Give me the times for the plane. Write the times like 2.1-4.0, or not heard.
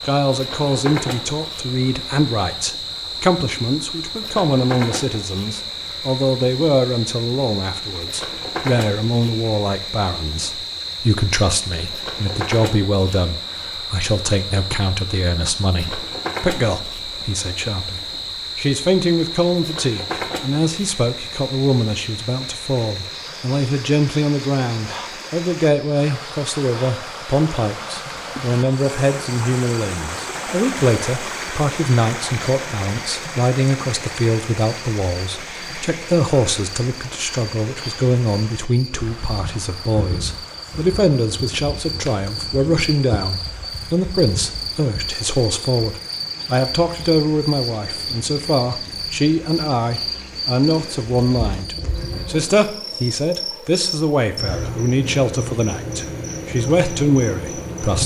not heard.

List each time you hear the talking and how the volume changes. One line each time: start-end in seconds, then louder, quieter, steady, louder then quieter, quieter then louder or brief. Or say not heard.
0.0-58.0 steady.